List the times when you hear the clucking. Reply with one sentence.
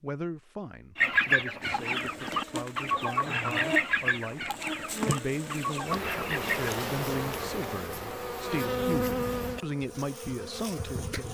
The clucking can be heard from 0.9 to 6.7 s.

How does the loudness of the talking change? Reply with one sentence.
The volume of the talking goes up.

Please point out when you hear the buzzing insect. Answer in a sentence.
The buzzing insect can be heard from 1.6 to 11.2 s.